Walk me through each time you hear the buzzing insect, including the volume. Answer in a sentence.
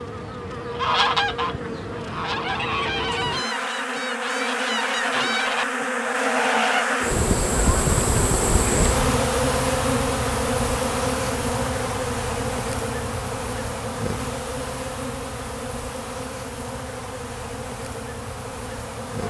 You can hear the buzzing insect from 0.0 to 19.2 s, getting louder then quieter.